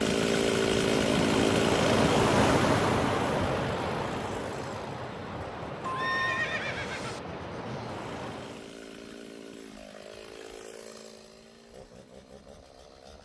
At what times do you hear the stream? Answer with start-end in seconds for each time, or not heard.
0.0-8.8.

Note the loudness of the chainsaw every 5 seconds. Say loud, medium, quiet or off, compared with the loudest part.
loud, quiet, quiet.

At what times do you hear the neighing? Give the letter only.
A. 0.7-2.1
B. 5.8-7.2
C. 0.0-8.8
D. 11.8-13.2
B.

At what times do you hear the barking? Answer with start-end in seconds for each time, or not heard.
not heard.